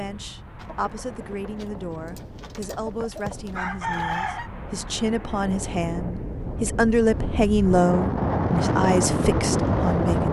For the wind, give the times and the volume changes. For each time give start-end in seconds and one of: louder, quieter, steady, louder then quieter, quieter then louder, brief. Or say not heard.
0.0-10.2 louder.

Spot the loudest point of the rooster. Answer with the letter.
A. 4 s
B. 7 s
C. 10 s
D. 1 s
A.